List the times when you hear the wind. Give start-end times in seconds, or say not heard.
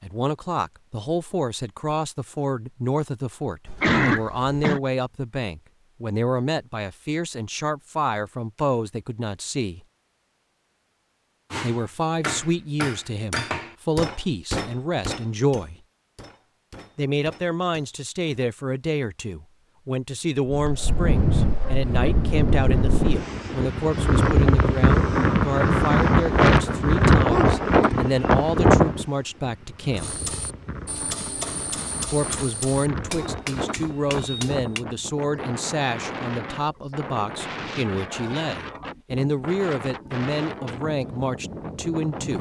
20.4-42.3.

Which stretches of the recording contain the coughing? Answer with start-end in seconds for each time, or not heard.
3.6-4.8.